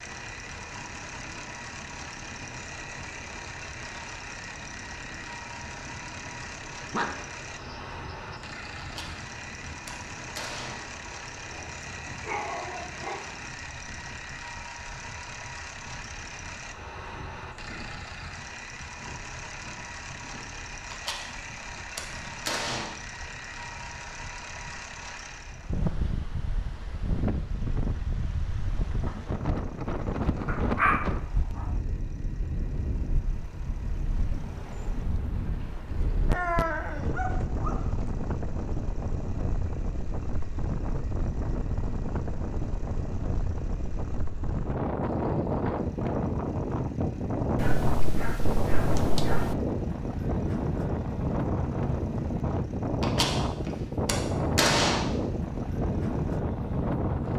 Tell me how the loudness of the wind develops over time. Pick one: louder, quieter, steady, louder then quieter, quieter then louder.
louder.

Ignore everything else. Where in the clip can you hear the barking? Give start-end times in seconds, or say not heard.
6.9-8.3, 11.5-13.2, 30.4-31.6, 36.2-38.0, 47.5-49.5.